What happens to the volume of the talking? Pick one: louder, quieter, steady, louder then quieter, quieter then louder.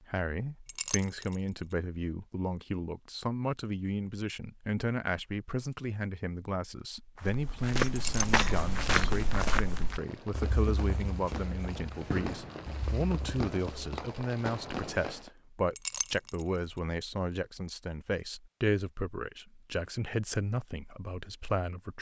steady.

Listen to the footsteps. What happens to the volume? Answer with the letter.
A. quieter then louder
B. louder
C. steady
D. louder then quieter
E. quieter
E.